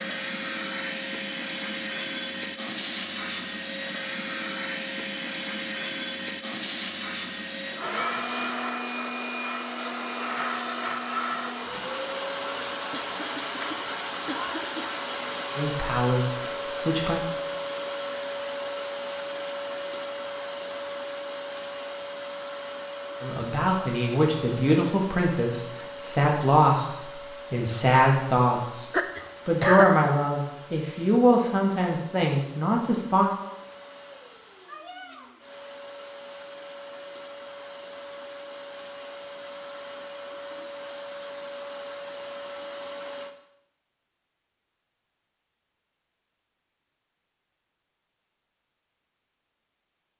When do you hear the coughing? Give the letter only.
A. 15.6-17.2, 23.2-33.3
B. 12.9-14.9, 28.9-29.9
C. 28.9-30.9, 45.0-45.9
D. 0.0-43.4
B.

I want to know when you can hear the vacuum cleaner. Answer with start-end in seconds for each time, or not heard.
0.0-43.4.